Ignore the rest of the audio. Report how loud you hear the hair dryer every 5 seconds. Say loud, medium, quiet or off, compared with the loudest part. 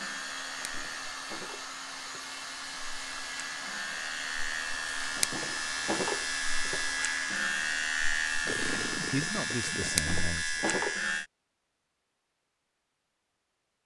loud, loud, off.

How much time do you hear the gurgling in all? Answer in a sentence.
You can hear the gurgling for 2 seconds altogether.